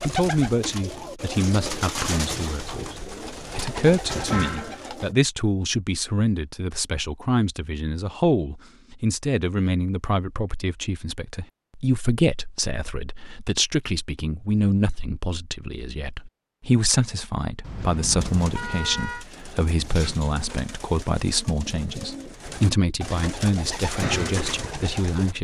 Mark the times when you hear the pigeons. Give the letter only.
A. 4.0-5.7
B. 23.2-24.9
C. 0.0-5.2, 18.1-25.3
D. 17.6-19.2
C.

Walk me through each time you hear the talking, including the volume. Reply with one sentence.
You can hear the talking from 0.0 to 25.3 s, at a steady volume.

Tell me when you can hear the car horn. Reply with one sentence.
You can hear the car horn from 17.6 to 19.2 s.